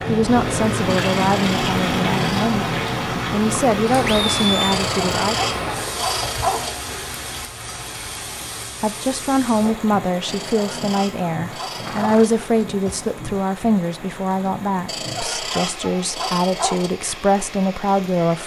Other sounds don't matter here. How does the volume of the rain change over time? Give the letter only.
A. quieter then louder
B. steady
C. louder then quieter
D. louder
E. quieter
E.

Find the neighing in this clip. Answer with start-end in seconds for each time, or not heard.
4.0-4.8, 11.7-13.1.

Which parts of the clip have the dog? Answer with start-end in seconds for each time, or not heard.
0.8-2.5, 4.7-6.7, 10.2-12.3, 14.8-16.9.